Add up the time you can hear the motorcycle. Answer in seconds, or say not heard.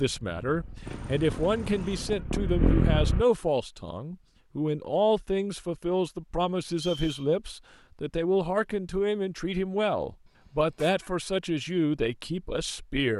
3 s.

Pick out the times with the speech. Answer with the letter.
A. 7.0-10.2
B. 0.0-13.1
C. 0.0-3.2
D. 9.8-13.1
B.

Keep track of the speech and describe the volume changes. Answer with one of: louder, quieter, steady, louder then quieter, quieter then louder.
steady.